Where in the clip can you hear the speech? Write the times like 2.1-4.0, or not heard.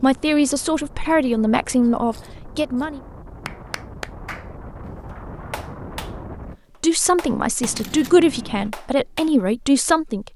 0.0-3.0, 6.8-10.3.